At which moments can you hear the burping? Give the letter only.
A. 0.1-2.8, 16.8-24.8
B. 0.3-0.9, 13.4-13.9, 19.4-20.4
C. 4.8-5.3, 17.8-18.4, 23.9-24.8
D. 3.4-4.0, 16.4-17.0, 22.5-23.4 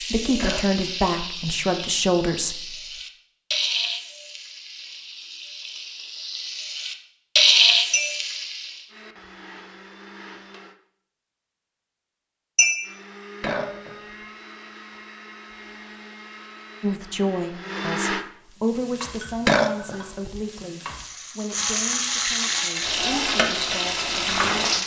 B.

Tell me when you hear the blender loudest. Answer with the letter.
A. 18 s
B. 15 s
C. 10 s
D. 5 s
A.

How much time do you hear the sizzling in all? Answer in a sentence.
The sizzling can be heard for 15 seconds in total.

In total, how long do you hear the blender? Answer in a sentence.
The blender can be heard for 7 seconds in total.